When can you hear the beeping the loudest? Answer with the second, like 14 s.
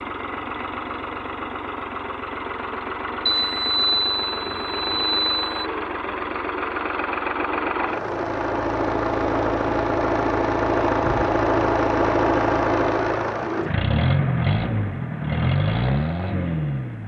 4 s.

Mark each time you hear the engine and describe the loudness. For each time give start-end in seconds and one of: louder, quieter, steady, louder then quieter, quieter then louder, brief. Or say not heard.
0.0-17.0 louder.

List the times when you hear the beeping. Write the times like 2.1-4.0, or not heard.
3.2-5.7.